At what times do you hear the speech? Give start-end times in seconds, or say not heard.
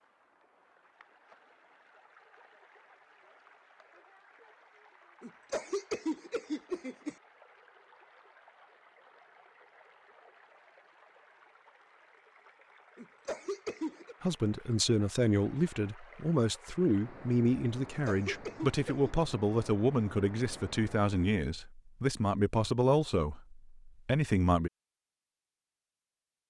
14.2-24.7.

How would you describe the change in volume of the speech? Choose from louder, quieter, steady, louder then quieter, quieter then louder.
steady.